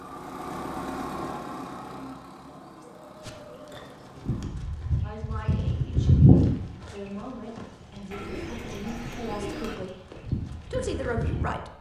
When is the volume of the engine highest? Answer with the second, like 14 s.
1 s.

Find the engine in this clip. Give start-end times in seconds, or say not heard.
0.0-4.5.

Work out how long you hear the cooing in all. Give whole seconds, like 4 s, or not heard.
3 s.